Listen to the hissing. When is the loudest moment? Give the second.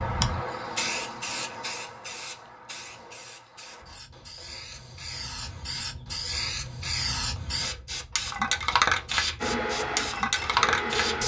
9 s.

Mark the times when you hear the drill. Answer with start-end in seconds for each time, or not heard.
9.4-11.2.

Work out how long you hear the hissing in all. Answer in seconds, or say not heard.
11 s.